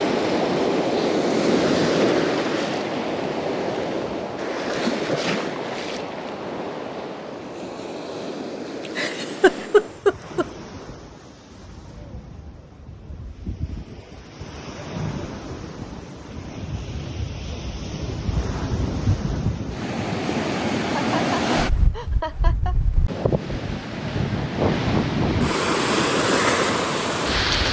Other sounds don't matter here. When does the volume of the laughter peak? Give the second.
10 s.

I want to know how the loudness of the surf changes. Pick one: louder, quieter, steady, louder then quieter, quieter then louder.
quieter then louder.